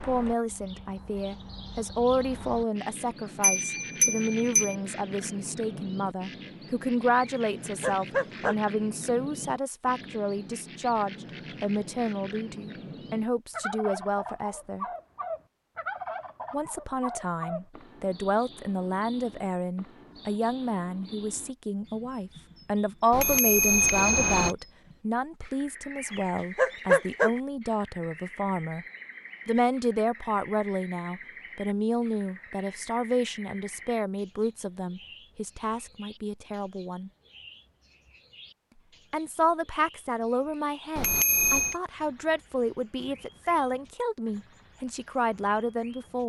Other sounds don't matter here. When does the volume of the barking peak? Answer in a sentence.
The volume of the barking peaks at 27 seconds.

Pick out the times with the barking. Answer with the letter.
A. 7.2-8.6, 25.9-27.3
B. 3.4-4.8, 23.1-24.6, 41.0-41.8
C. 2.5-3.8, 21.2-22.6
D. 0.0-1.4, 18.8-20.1
A.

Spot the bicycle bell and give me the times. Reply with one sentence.
You can hear the bicycle bell from 3.4 to 4.8 s, from 23.1 to 24.6 s and from 41.0 to 41.8 s.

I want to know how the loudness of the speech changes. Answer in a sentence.
The loudness of the speech stays about the same.